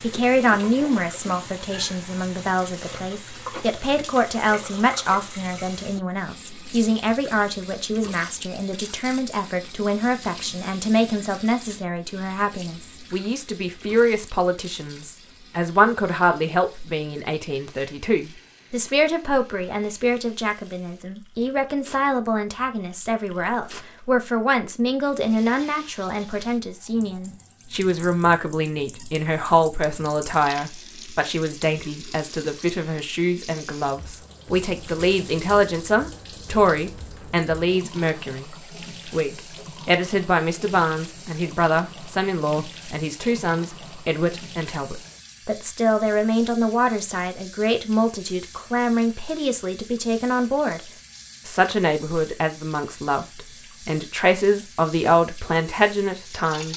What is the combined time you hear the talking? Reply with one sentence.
The talking can be heard for 56 seconds in total.